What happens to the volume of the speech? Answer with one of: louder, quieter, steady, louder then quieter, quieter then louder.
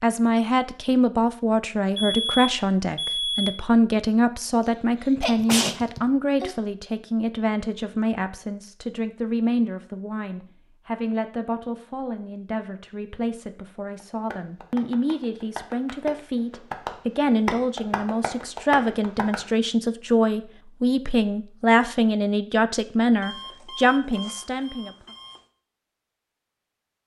quieter then louder.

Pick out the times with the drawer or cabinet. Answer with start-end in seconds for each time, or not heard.
not heard.